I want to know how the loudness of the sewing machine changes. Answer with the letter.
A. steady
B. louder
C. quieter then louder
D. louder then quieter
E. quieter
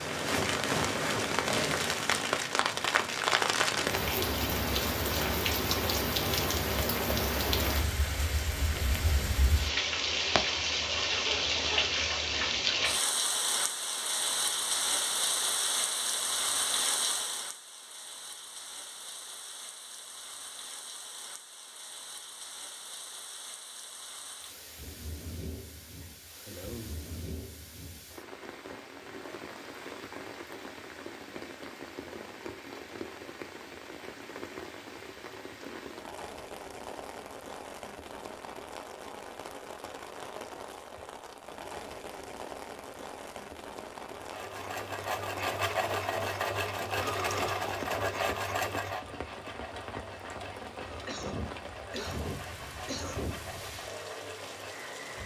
E.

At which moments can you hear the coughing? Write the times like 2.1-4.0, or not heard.
11.1-11.9, 26.0-26.9, 51.0-53.4.